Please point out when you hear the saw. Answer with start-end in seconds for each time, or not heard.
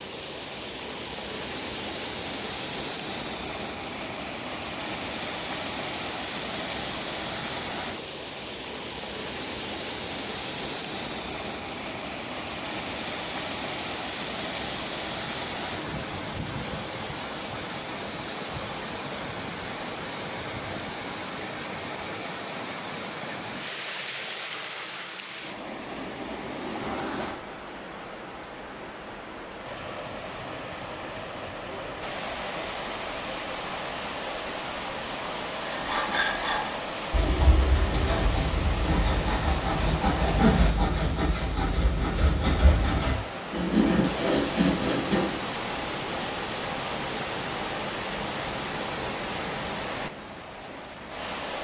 35.6-45.4.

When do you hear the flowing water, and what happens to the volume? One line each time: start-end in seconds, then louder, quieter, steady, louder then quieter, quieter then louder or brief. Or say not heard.
0.0-51.5 steady.